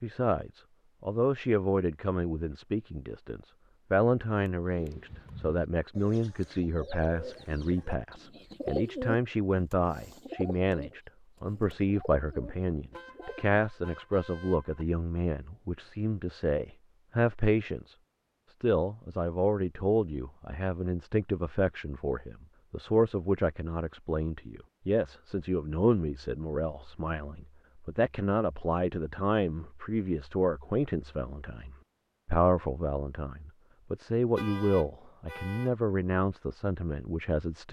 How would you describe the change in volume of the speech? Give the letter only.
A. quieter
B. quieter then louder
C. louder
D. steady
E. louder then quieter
D.